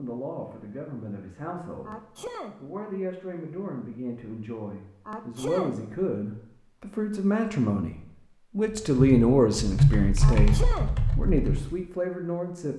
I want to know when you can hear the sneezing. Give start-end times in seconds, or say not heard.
1.9-2.5, 5.0-5.8, 10.2-10.9.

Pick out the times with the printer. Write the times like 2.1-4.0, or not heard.
not heard.